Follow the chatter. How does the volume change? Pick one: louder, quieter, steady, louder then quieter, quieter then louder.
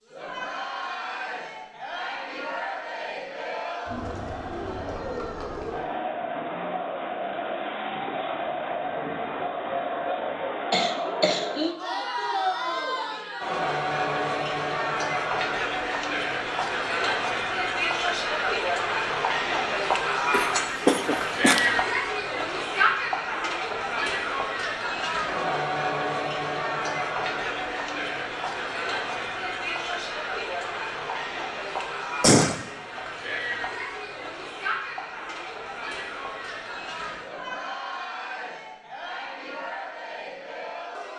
louder then quieter.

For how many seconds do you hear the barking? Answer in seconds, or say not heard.
not heard.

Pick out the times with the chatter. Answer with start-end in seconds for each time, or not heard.
0.0-41.1.